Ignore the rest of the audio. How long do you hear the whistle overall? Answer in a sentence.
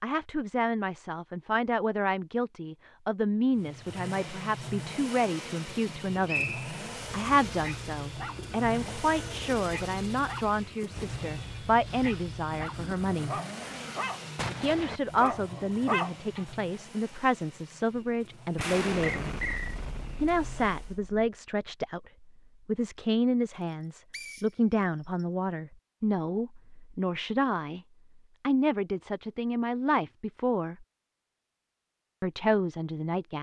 You can hear the whistle for 2 seconds altogether.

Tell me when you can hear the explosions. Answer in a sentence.
The explosions can be heard from 14.3 to 15.0 s and from 18.6 to 21.3 s.